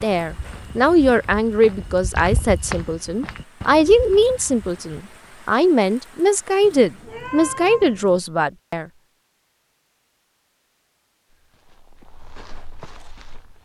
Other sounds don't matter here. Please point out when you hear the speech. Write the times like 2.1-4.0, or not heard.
0.0-8.8.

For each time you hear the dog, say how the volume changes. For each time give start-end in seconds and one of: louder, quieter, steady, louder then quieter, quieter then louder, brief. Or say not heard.
not heard.